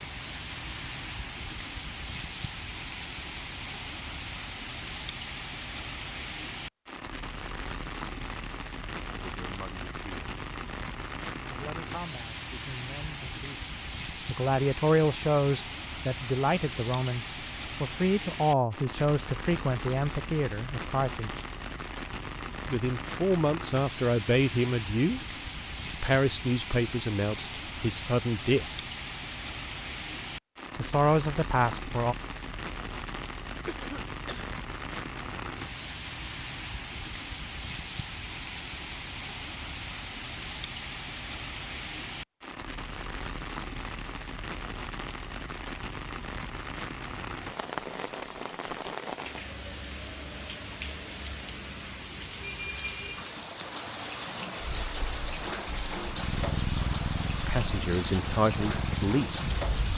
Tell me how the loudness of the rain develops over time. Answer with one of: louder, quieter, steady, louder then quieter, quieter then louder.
steady.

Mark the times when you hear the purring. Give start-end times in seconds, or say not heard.
54.5-59.9.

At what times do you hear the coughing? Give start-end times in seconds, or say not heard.
33.6-34.5.